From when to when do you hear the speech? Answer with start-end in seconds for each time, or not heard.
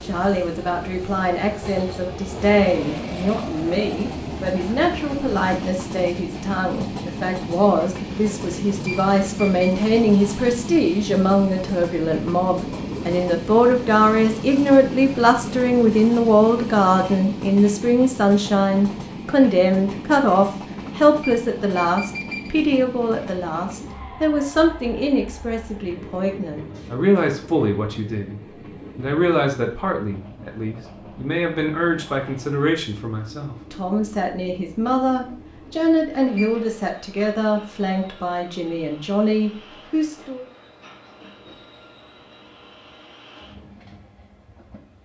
0.0-40.5.